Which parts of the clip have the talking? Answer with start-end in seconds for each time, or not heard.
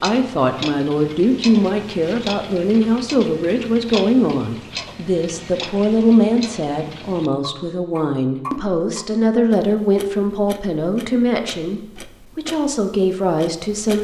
0.0-13.9.